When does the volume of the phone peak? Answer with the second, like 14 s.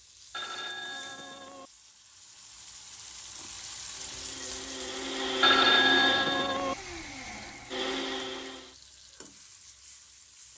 6 s.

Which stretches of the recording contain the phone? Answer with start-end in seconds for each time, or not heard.
0.3-1.7, 5.4-6.8.